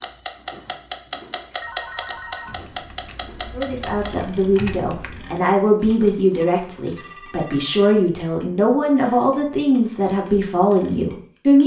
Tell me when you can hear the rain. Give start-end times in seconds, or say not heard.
not heard.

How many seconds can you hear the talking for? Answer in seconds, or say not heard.
8 s.